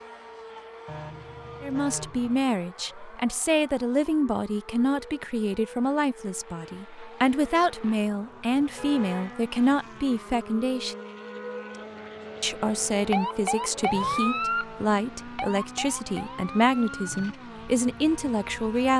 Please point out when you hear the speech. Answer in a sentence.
You can hear the speech from 1.6 to 10.9 s and from 12.4 to 18.9 s.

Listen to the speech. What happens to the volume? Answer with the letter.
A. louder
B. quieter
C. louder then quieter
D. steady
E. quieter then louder
D.